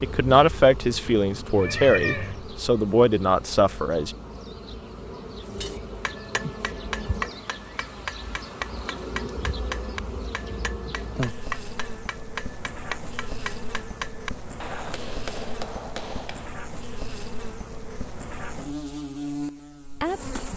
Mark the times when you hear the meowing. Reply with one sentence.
You can hear the meowing from 1.5 to 2.4 s.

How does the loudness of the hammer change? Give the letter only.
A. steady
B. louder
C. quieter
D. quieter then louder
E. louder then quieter
A.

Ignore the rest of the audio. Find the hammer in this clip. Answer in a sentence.
The hammer can be heard from 5.4 to 16.5 s.